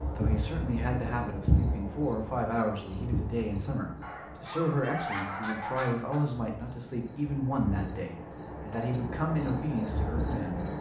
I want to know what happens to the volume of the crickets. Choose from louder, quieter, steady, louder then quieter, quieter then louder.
quieter then louder.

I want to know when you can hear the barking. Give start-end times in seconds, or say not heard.
4.0-6.2.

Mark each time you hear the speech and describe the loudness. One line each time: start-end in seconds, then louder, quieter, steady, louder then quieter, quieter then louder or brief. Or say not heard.
0.1-10.7 steady.